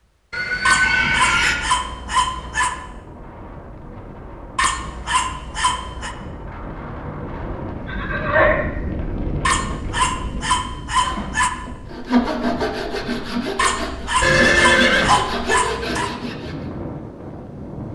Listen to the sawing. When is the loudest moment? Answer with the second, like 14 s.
12 s.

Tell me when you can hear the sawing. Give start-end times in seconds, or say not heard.
10.9-16.6.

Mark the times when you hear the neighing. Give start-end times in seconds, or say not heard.
0.3-1.6, 7.8-8.7, 14.2-15.2.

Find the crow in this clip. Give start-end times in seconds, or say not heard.
not heard.